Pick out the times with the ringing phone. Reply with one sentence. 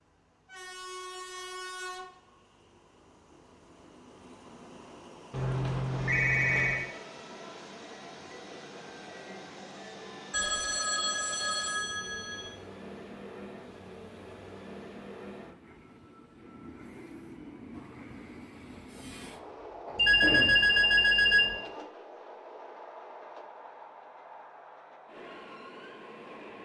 You can hear the ringing phone from 5.3 to 6.9 s, from 10.3 to 12.5 s and from 19.9 to 21.6 s.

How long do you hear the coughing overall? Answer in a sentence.
You can hear the coughing for 2 seconds altogether.